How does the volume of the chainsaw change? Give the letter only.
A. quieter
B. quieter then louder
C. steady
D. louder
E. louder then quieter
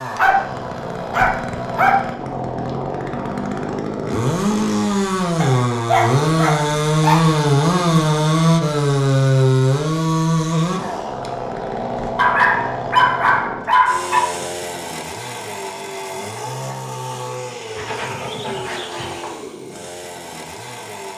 E.